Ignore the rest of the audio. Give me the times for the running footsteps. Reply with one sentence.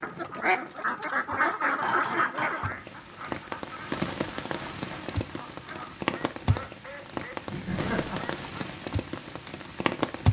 The running footsteps can't be heard in this clip.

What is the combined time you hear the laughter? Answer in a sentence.
You can hear the laughter for 2 seconds altogether.